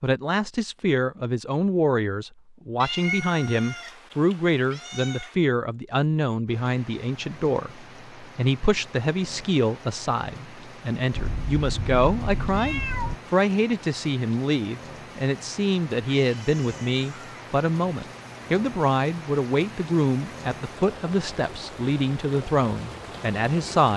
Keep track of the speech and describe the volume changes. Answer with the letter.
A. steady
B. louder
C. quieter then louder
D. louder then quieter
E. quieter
A.